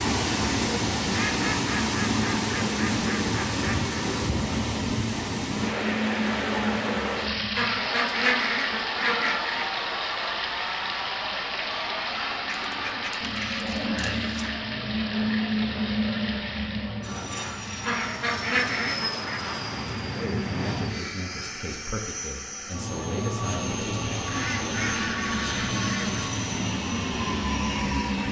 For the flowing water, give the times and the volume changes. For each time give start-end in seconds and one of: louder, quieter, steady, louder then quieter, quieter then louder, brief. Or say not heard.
0.0-17.1 quieter.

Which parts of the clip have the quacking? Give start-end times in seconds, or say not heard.
1.1-3.9, 7.5-9.7, 12.4-14.5, 17.8-19.4, 24.2-26.2.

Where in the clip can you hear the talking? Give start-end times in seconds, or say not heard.
20.1-24.1.